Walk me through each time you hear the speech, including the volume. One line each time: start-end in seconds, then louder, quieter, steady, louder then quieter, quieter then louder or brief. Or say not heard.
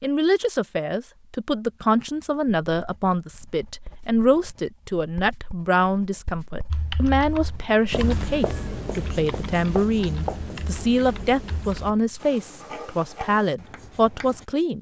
0.0-14.7 steady.